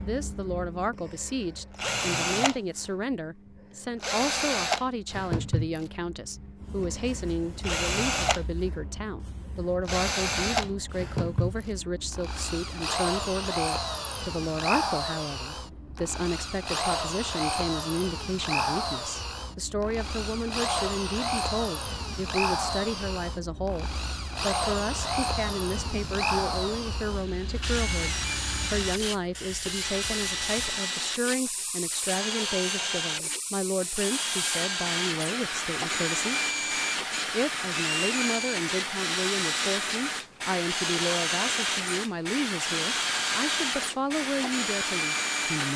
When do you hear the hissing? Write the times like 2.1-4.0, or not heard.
6.6-45.7.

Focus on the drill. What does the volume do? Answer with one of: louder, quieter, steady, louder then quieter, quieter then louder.
steady.